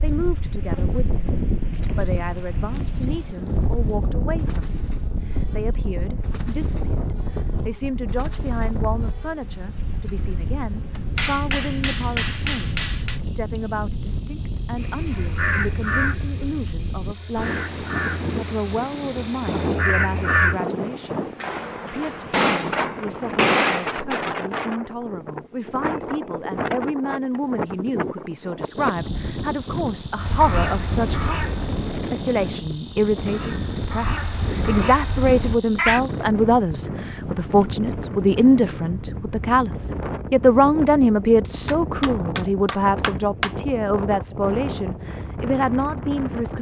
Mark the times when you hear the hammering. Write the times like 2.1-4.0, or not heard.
11.2-13.2, 22.3-23.9, 41.6-43.5.